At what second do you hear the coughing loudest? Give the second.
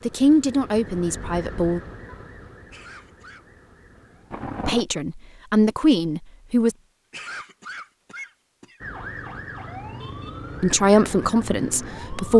7 s.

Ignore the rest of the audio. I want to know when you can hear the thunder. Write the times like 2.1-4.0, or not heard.
4.3-4.8.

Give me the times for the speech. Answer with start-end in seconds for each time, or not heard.
0.1-1.8, 4.7-6.8, 10.6-12.3.